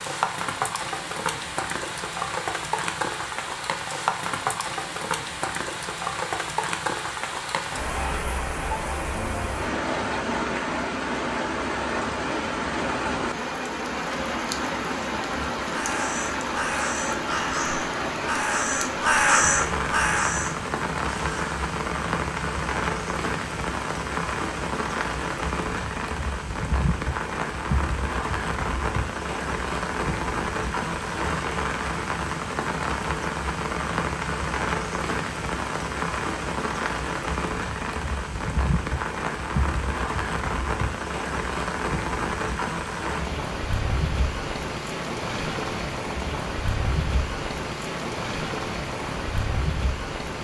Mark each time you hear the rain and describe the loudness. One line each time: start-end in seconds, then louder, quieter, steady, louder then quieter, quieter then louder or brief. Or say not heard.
0.0-50.3 steady.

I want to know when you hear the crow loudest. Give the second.
19 s.